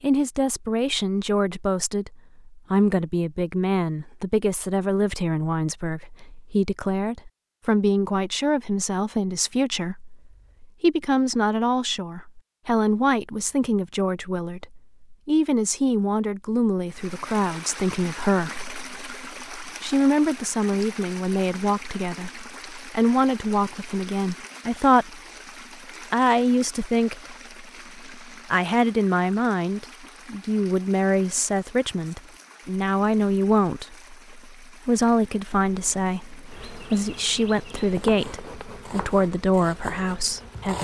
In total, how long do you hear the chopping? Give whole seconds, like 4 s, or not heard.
3 s.